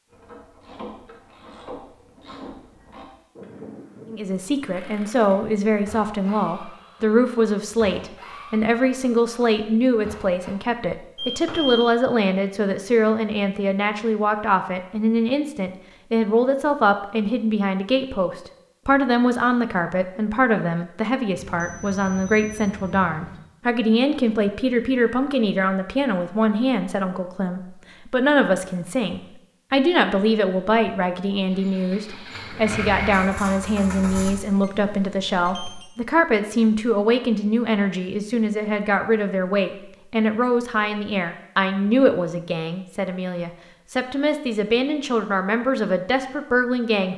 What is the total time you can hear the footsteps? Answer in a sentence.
You can't hear the footsteps here.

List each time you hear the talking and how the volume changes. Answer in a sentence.
You can hear the talking from 4.1 to 47.1 s, at a steady volume.